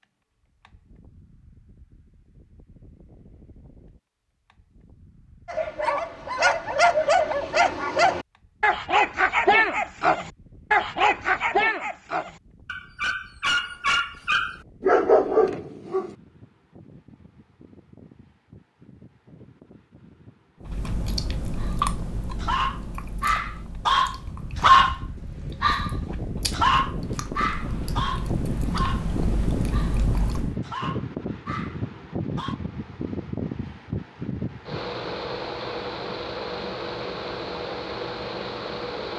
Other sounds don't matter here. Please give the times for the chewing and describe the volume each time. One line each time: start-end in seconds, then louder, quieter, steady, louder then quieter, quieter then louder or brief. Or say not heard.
20.6-30.6 quieter then louder.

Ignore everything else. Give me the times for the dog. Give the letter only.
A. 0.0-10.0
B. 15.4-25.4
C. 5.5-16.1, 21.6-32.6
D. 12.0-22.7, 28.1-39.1
C.